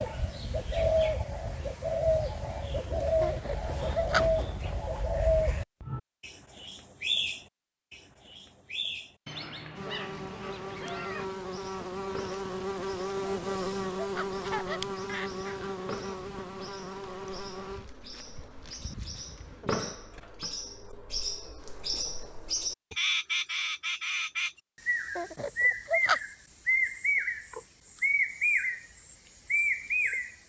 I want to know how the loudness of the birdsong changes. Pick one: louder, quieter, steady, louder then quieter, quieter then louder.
quieter then louder.